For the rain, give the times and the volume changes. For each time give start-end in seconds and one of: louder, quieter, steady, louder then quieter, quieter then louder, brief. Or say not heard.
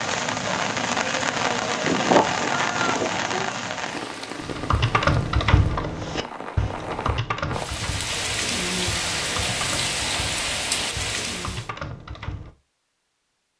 0.0-11.7 quieter then louder.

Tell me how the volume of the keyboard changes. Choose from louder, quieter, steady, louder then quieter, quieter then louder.
quieter.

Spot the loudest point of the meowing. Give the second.
2 s.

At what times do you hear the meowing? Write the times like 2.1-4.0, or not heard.
1.8-3.5.